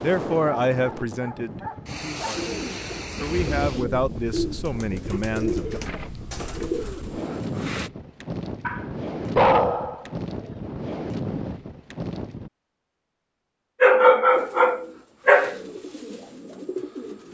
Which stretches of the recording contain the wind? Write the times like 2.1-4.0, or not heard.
0.0-12.5.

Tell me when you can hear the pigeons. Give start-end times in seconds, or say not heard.
2.4-7.9, 14.3-17.2.